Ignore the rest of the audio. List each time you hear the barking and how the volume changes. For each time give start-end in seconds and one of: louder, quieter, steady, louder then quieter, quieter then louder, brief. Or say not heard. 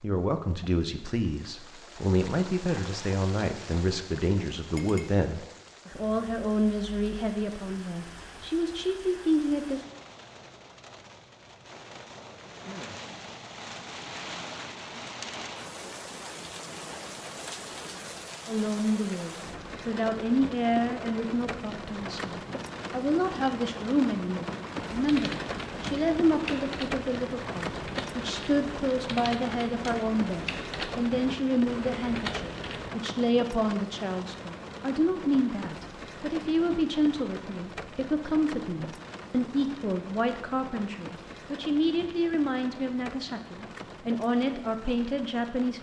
not heard.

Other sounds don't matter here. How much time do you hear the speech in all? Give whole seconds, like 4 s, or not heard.
37 s.